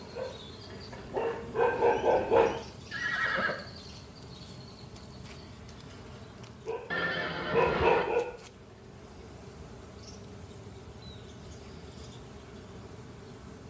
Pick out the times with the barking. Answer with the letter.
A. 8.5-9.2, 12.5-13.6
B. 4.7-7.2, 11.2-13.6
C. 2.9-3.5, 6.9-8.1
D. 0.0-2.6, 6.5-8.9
D.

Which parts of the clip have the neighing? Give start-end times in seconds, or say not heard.
2.9-3.5, 6.9-8.1.